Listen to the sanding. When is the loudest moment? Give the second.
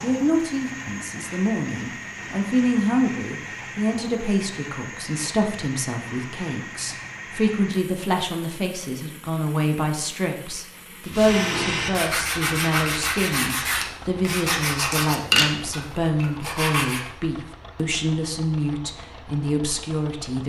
15 s.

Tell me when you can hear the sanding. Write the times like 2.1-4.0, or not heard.
11.1-17.0.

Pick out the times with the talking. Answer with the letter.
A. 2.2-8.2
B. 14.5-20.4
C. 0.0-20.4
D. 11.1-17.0
C.